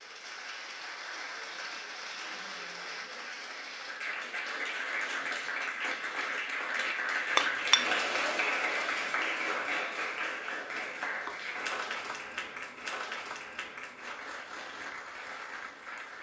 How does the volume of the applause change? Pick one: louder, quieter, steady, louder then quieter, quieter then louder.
louder then quieter.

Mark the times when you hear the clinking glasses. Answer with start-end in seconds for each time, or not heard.
7.3-8.3.